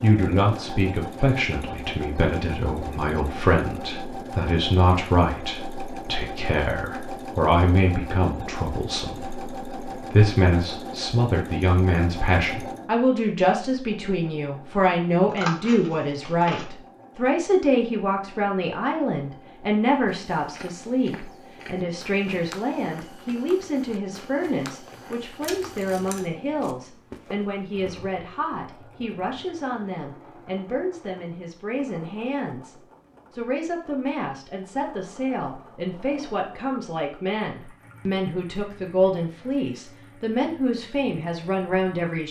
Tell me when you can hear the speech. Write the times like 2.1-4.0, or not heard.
0.0-42.2.